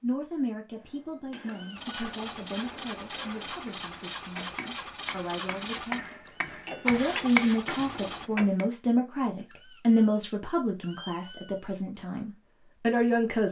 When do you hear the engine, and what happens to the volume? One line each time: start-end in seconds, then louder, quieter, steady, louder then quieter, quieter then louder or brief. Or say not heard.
1.8-8.3 steady.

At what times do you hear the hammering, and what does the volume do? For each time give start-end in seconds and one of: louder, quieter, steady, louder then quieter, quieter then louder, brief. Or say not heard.
0.8-8.7 louder.